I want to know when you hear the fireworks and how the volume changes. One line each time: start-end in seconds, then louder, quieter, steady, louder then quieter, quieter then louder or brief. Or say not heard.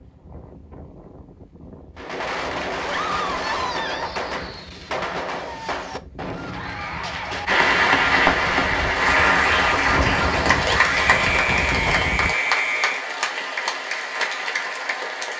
1.9-12.1 steady.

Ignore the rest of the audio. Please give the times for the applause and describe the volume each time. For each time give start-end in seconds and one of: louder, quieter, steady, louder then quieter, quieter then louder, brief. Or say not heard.
7.5-15.3 quieter.